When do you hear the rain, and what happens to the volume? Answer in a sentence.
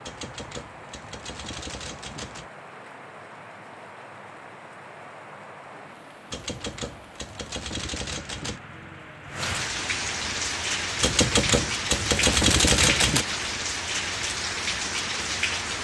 You can hear the rain from 0.0 to 15.7 s, getting louder.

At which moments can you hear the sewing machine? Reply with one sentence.
The sewing machine can't be heard in this clip.